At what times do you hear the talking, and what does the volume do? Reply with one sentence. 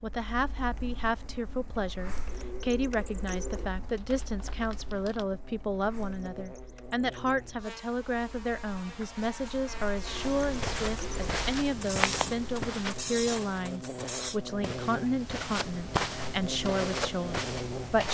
The talking can be heard from 0.0 to 18.0 s, at a steady volume.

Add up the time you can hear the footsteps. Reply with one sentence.
You can hear the footsteps for 8 seconds altogether.